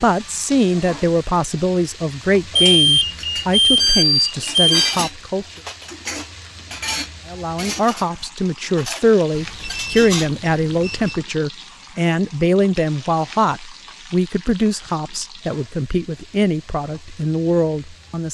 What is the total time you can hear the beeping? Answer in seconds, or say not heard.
4 s.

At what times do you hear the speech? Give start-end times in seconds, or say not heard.
0.0-5.5, 7.2-18.2.